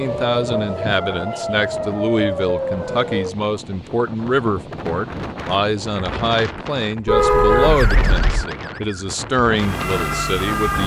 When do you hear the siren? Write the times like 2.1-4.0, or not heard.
0.0-3.4, 7.5-10.8.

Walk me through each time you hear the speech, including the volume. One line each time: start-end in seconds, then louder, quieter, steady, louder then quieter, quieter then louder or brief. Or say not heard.
0.0-10.8 steady.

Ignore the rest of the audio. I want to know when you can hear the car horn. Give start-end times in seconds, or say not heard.
7.0-8.5.